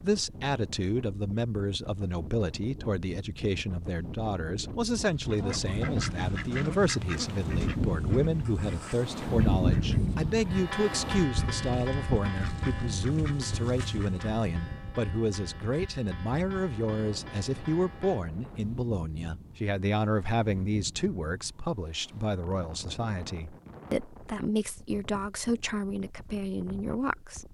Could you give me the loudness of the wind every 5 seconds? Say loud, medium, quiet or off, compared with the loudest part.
quiet, loud, medium, quiet, quiet, quiet.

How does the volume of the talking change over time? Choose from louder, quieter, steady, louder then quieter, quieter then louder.
steady.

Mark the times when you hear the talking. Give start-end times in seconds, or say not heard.
0.0-27.4.